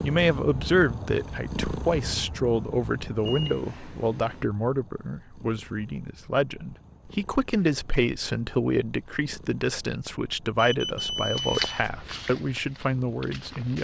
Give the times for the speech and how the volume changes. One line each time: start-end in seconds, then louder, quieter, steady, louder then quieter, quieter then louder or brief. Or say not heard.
0.0-13.7 steady.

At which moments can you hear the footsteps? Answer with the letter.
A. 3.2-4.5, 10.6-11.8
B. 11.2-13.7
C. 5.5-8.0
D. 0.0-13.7
B.